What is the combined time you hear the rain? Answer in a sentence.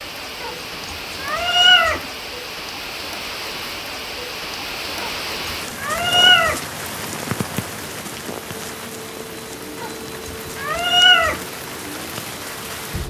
You can hear the rain for 13 seconds altogether.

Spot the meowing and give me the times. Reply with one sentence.
You can hear the meowing from 0.4 to 2.0 s, from 5.0 to 6.7 s and from 9.8 to 11.4 s.